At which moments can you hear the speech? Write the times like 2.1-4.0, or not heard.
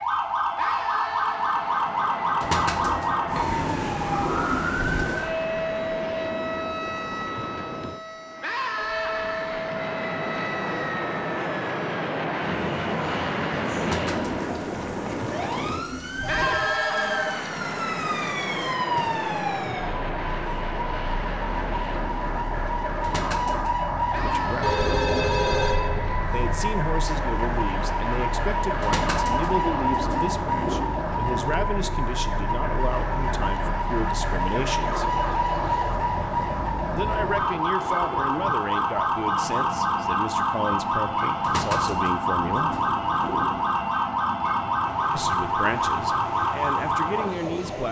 24.1-24.8, 26.3-35.2, 36.9-42.8, 45.1-47.8.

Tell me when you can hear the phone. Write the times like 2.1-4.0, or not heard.
16.2-17.4, 24.6-26.4.